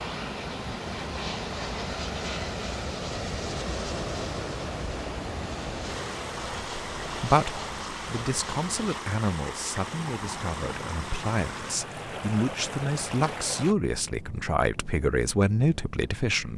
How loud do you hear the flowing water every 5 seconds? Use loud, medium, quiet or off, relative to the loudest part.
loud, loud, loud, off.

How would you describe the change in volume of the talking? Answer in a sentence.
The volume of the talking goes up.